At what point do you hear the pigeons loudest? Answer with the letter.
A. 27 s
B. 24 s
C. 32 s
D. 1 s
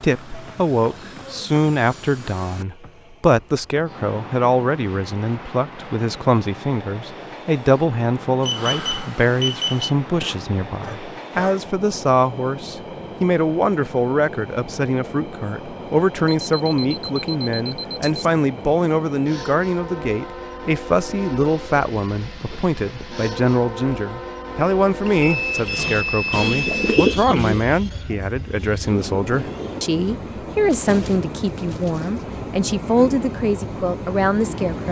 A.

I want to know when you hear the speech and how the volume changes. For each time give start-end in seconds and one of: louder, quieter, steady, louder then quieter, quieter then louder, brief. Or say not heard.
0.0-34.8 steady.